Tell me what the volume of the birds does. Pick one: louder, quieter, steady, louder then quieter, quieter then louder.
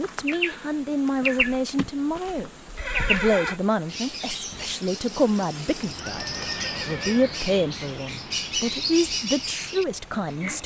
quieter then louder.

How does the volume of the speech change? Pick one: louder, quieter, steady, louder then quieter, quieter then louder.
steady.